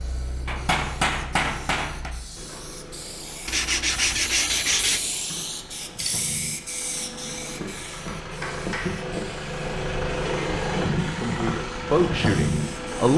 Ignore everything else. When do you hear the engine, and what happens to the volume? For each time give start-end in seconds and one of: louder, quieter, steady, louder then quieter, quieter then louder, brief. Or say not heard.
0.0-13.1 louder.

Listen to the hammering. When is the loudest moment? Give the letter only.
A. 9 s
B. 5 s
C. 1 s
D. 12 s
C.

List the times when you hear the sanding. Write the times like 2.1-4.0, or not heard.
3.5-5.0.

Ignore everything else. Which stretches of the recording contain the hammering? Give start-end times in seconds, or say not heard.
0.5-2.1, 8.1-8.9.